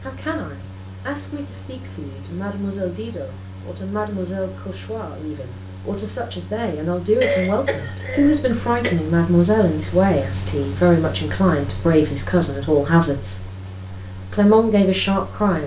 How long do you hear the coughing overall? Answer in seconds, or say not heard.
2 s.